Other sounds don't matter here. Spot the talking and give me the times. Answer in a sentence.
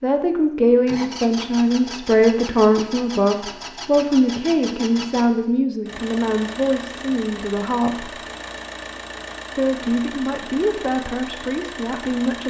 The talking can be heard from 0.0 to 8.1 s and from 9.6 to 12.4 s.